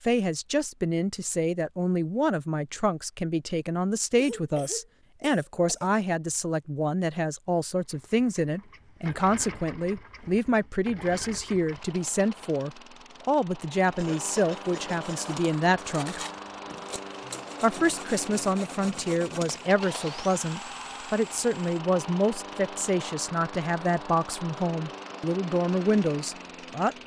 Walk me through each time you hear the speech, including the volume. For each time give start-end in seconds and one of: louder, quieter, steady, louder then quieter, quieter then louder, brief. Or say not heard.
0.0-16.2 steady
17.6-26.9 steady.